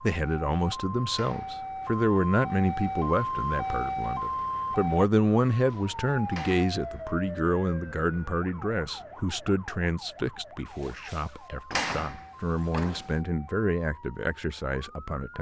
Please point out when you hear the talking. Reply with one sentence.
You can hear the talking from 0.0 to 15.3 s.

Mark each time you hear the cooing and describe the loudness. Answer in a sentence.
You can't hear the cooing here.